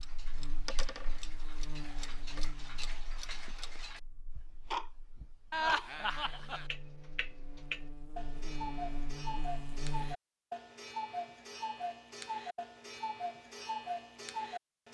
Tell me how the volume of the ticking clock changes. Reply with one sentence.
The volume of the ticking clock goes up.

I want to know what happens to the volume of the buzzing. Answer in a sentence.
The loudness of the buzzing goes down, then up.